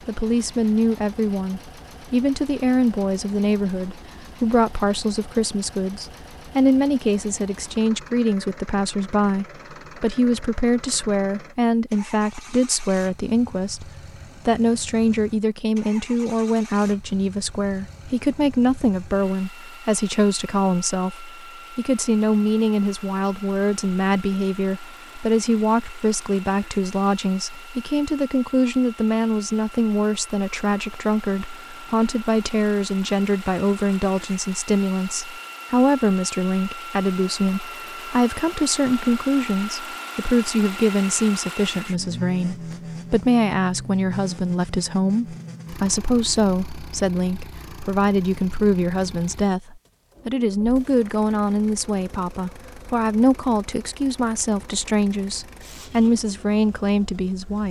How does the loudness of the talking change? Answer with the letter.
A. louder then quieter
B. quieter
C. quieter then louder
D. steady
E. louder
D.